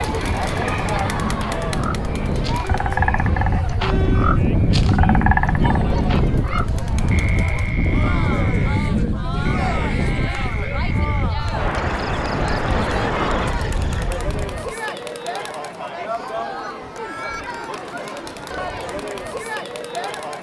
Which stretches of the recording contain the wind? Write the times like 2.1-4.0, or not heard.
0.0-14.8.